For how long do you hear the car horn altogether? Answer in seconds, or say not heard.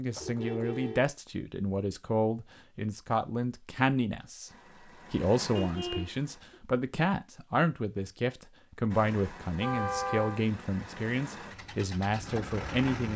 3 s.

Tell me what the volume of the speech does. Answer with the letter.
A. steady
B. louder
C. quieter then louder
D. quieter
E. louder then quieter
A.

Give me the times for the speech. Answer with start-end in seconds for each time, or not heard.
0.0-4.5, 5.1-13.1.